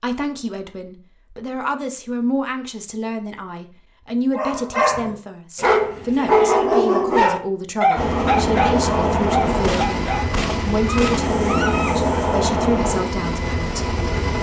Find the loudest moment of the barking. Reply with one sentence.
The loudest moment of the barking is at 6 seconds.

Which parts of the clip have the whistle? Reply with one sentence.
You can't hear the whistle here.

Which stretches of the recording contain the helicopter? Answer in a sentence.
You can hear the helicopter from 8.0 to 14.3 s.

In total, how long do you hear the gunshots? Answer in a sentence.
You can hear the gunshots for 2 seconds altogether.